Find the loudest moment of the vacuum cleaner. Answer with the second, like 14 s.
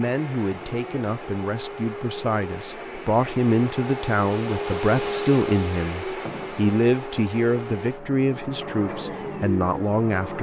5 s.